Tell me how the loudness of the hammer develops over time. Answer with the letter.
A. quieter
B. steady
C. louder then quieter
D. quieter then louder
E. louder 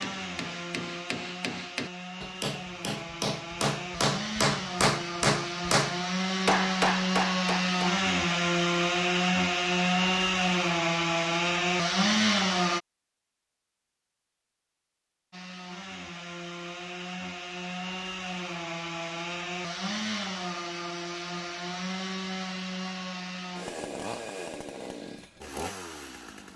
E.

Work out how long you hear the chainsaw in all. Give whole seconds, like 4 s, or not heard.
24 s.